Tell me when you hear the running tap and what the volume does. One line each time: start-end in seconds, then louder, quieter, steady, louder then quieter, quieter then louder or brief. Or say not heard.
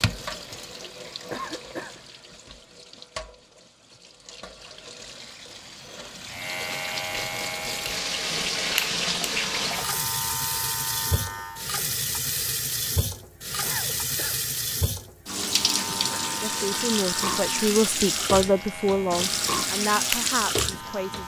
0.0-21.2 louder.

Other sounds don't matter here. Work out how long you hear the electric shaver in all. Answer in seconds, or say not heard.
11 s.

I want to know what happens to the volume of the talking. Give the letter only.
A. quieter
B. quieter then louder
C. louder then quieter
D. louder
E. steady
C.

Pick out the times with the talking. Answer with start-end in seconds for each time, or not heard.
16.4-21.2.